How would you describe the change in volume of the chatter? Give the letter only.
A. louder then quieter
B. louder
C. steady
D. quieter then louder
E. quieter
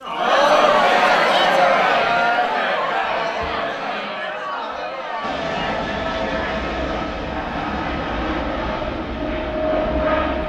E.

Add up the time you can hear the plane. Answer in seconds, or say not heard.
5 s.